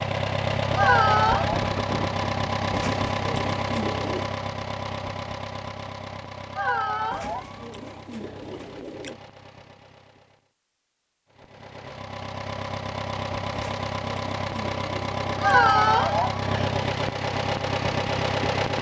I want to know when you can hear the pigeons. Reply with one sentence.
You can hear the pigeons from 2.7 to 4.3 s, from 7.1 to 9.2 s and from 13.5 to 15.8 s.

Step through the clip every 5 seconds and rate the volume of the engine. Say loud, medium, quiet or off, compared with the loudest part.
loud, quiet, medium, loud.